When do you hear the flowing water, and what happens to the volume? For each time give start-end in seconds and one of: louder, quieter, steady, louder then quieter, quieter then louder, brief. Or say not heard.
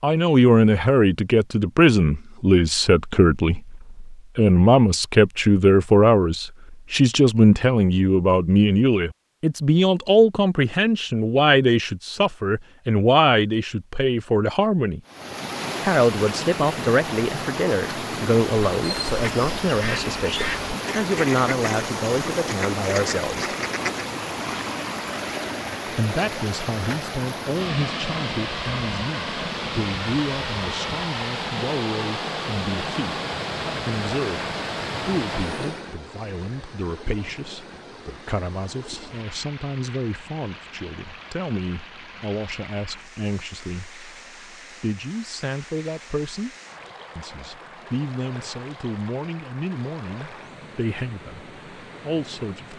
15.1-52.7 quieter.